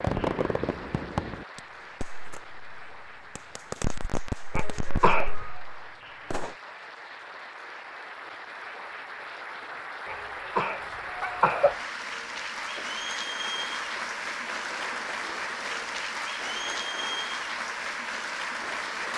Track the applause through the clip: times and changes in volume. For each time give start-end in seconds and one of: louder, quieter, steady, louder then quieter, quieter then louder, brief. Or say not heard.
0.0-19.1 louder.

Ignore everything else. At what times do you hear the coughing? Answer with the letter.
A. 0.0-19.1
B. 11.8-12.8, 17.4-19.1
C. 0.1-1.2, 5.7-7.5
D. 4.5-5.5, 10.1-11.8
D.